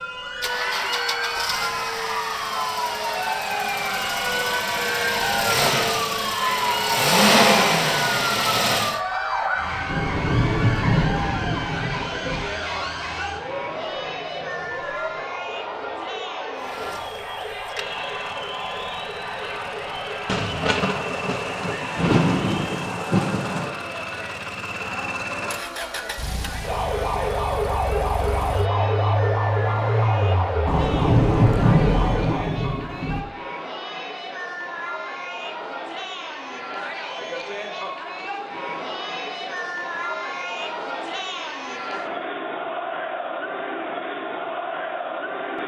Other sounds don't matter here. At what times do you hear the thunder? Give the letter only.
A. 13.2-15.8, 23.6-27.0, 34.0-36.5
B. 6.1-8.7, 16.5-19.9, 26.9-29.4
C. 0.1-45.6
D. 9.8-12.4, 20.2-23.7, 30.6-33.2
D.